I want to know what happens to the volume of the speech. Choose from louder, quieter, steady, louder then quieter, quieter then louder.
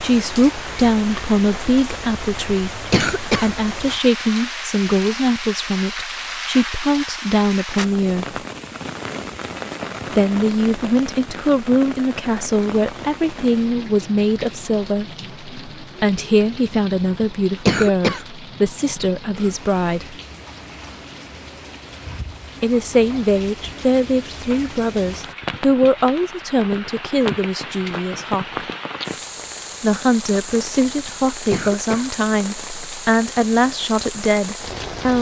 steady.